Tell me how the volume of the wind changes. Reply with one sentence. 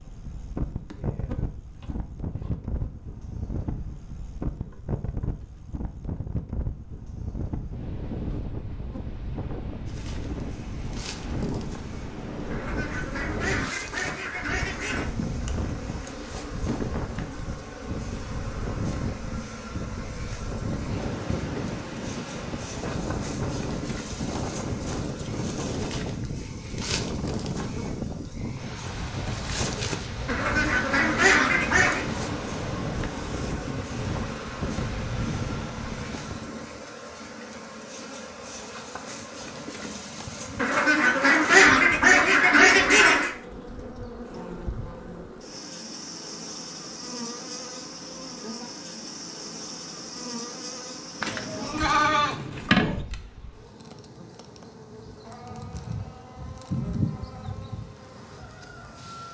The loudness of the wind stays about the same.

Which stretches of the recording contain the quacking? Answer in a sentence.
The quacking can be heard from 12.5 to 15.1 s, from 30.2 to 32.0 s and from 40.5 to 43.3 s.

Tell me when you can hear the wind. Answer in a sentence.
You can hear the wind from 0.0 to 36.6 s.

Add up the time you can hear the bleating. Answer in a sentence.
You can hear the bleating for 2 seconds altogether.